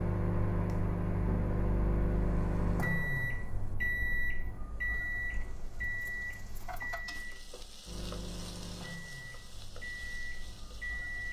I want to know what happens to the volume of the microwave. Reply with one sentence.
The volume of the microwave goes down.